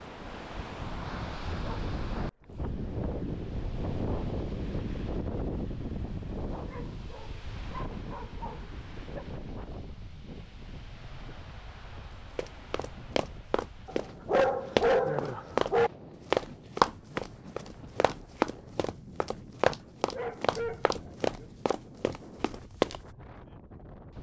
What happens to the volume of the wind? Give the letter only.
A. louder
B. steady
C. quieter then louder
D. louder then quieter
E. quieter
E.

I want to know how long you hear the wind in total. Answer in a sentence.
The wind can be heard for 24 seconds in total.